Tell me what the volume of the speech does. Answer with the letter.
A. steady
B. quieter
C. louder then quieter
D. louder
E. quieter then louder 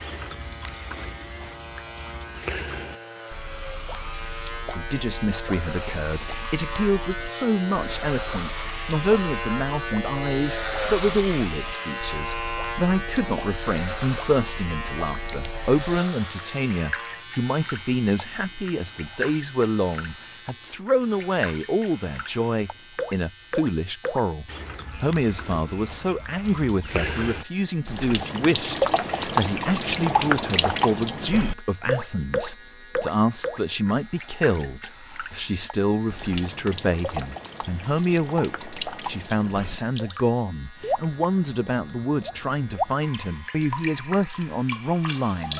A.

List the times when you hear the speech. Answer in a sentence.
The speech can be heard from 4.8 to 45.5 s.